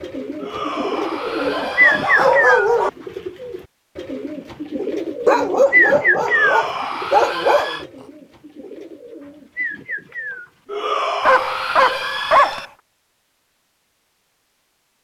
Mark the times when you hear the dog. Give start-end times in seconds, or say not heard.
1.2-2.9, 5.2-7.8, 11.2-12.7.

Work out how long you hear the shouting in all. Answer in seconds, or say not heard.
6 s.